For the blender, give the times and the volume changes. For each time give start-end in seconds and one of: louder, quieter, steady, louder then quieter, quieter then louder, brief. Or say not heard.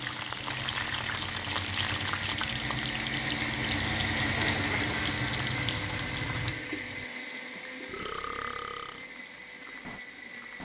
0.0-10.6 louder then quieter.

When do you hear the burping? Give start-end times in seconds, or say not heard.
7.8-9.1.